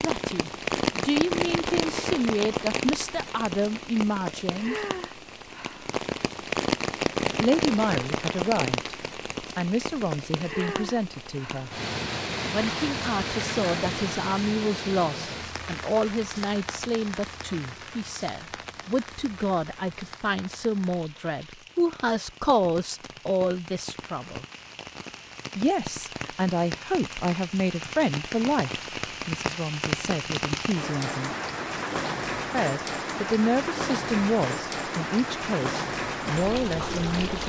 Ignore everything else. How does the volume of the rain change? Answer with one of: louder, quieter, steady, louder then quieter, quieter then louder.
quieter then louder.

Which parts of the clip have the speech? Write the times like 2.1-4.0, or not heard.
0.0-4.8, 7.4-8.9, 9.6-11.7, 12.5-24.4, 25.6-31.4, 32.5-37.4.